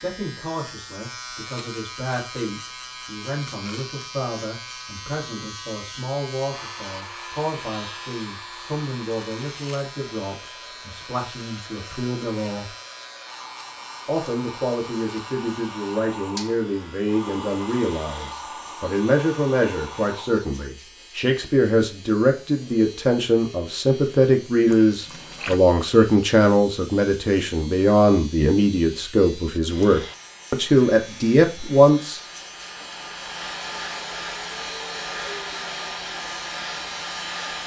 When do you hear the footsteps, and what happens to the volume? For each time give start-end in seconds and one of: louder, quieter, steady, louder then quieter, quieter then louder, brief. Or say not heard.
not heard.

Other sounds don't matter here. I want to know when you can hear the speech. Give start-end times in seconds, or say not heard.
0.0-12.7, 14.1-32.2.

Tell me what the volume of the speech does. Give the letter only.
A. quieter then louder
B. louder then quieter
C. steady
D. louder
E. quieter
D.